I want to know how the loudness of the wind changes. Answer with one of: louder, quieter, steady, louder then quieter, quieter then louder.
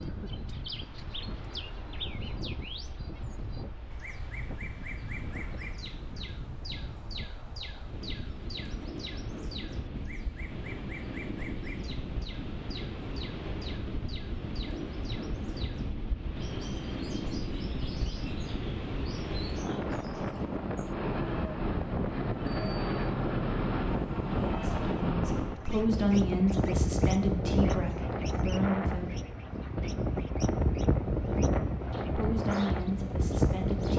louder.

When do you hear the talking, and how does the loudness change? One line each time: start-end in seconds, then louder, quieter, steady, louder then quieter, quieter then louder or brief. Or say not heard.
24.4-29.1 louder then quieter
32.1-33.9 brief.